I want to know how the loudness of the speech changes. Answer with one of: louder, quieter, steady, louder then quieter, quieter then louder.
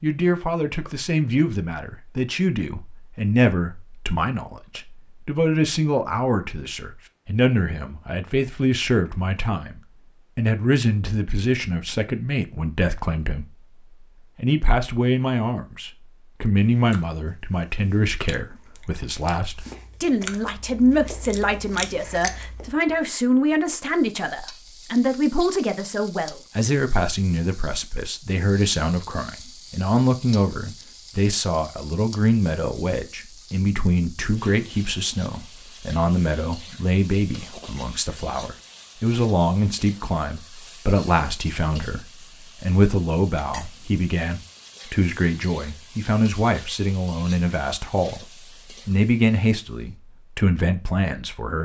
steady.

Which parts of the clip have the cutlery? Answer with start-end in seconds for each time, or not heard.
not heard.